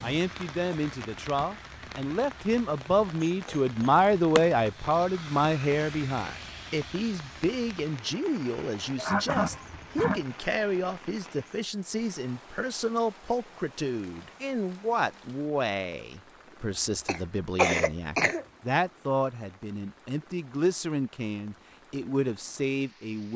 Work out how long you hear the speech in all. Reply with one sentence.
The speech can be heard for 23 seconds in total.